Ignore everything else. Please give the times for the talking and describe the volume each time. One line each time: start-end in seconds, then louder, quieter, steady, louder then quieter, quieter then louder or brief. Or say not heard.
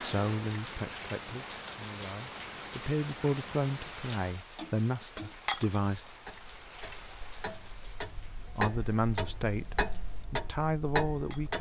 0.0-6.0 quieter then louder
8.6-11.5 brief.